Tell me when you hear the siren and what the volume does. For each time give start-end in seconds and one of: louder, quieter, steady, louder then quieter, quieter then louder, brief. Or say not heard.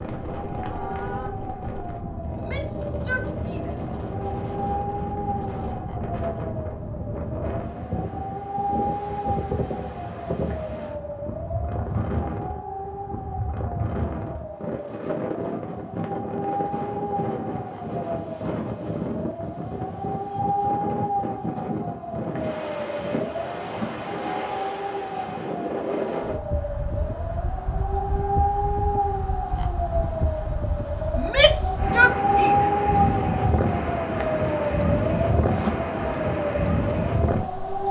0.1-37.8 louder.